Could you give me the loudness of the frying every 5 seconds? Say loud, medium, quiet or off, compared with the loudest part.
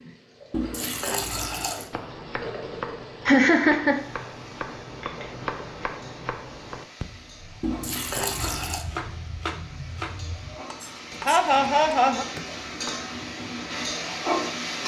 medium, quiet, loud.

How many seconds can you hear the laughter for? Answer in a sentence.
The laughter can be heard for 2 seconds in total.